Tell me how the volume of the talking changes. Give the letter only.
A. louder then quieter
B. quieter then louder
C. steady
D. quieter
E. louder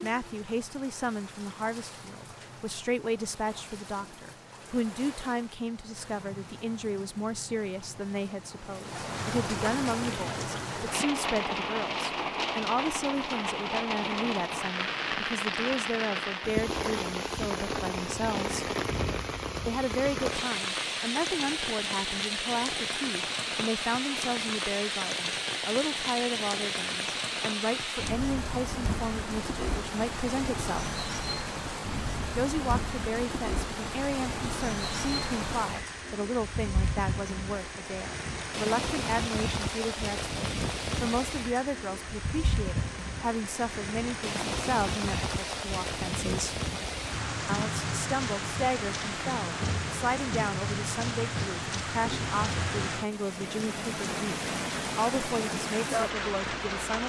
C.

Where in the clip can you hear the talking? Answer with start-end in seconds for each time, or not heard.
0.0-18.6, 19.6-30.9, 32.4-46.6, 47.5-57.0.